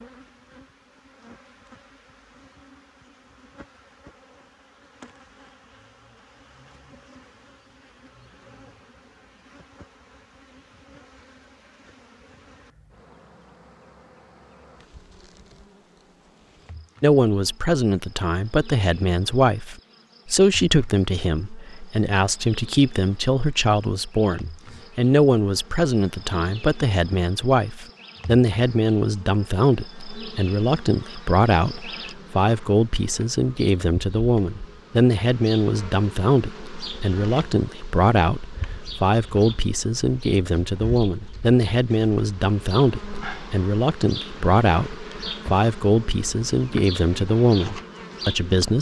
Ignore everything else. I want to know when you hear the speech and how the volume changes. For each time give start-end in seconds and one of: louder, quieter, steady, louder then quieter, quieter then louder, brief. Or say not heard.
17.0-48.7 steady.